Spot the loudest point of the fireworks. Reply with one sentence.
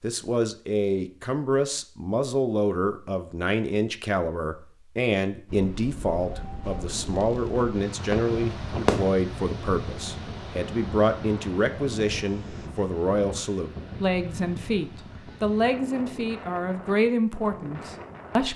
The volume of the fireworks peaks at 9 seconds.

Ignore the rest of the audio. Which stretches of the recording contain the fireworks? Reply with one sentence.
You can hear the fireworks from 6.7 to 9.1 s.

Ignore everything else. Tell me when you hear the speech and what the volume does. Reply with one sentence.
You can hear the speech from 0.0 to 18.5 s, at a steady volume.